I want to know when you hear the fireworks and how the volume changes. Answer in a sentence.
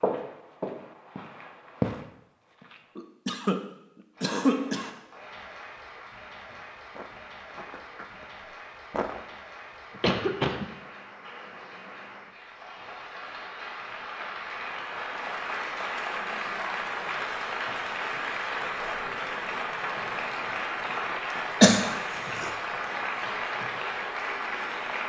You can't hear the fireworks here.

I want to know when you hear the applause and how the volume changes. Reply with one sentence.
The applause can be heard from 4.1 to 25.0 s, getting louder.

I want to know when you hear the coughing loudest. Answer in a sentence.
The loudest moment of the coughing is at 22 seconds.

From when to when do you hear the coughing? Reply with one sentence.
You can hear the coughing from 3.0 to 3.6 s, from 4.2 to 4.9 s, from 9.9 to 10.7 s and from 21.6 to 22.4 s.